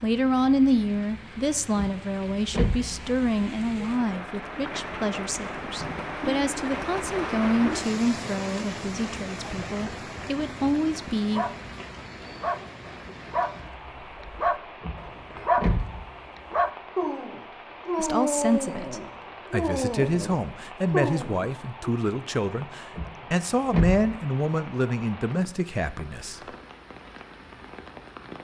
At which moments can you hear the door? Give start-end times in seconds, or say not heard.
1.8-3.0, 14.8-16.0, 22.9-24.1.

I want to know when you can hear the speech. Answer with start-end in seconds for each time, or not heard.
0.0-11.4, 17.9-26.4.